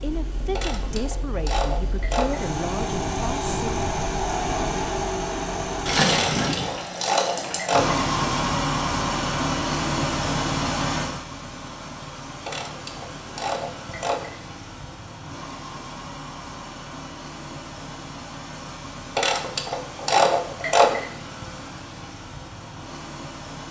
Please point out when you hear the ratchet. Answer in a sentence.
You can hear the ratchet from 0.6 to 2.5 s, from 6.1 to 8.0 s, from 12.4 to 14.3 s and from 19.1 to 21.1 s.